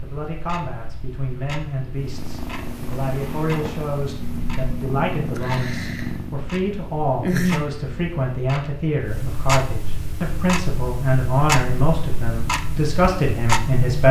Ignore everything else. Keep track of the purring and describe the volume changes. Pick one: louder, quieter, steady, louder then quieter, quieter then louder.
louder.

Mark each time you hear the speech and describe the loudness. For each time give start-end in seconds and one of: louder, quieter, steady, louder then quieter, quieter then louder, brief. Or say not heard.
0.0-14.0 louder.